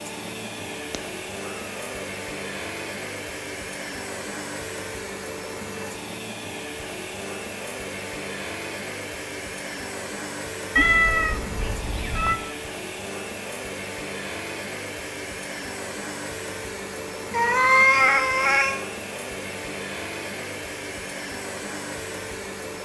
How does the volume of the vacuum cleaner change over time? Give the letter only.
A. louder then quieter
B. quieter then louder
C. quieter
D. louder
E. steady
E.